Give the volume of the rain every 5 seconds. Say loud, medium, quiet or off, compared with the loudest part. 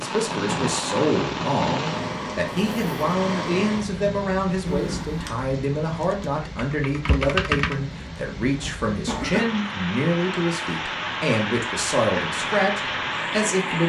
loud, medium, loud.